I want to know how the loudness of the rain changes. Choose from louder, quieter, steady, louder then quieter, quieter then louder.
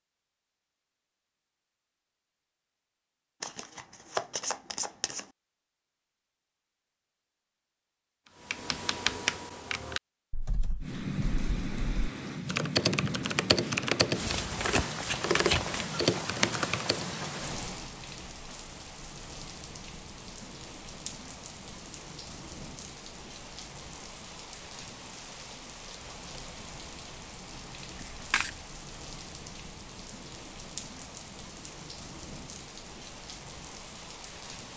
quieter.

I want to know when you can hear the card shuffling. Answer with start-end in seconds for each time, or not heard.
3.4-5.2, 14.6-15.8, 27.9-28.6.